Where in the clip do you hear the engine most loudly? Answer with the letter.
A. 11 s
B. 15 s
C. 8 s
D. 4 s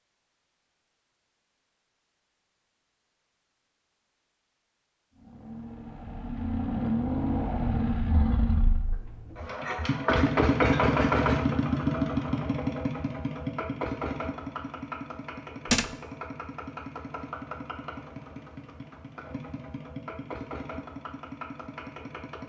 A.